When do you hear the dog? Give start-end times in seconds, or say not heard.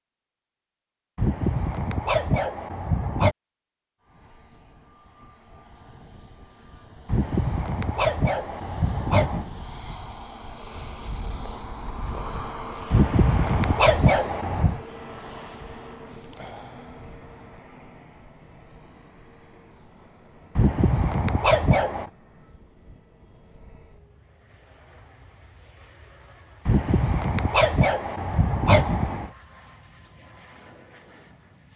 1.1-3.4, 7.0-9.4, 12.9-14.8, 20.6-22.1, 26.6-29.3.